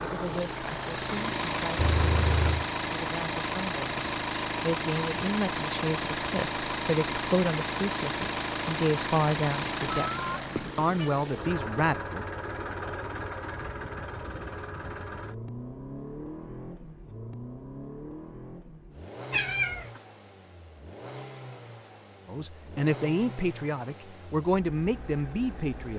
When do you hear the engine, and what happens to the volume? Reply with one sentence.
You can hear the engine from 0.0 to 25.9 s, getting quieter.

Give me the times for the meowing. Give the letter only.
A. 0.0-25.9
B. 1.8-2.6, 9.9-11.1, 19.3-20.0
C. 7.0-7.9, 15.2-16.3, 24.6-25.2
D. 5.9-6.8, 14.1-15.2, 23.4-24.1
B.